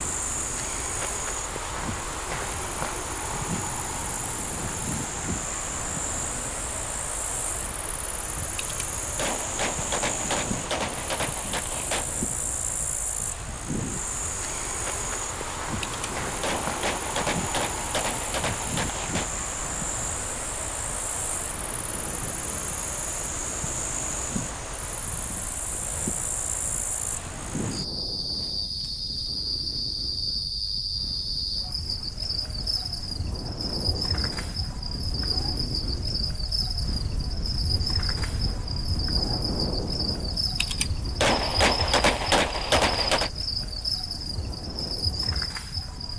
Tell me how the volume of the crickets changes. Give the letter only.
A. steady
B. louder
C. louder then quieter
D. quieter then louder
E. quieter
A.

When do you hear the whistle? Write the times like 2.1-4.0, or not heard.
not heard.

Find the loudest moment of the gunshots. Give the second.
42 s.